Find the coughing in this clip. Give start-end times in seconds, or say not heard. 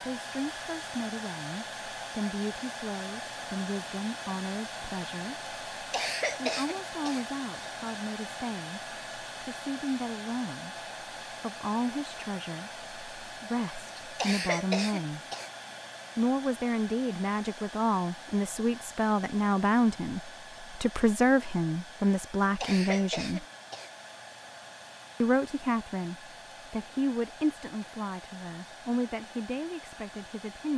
5.9-7.2, 14.2-15.5, 22.6-23.9.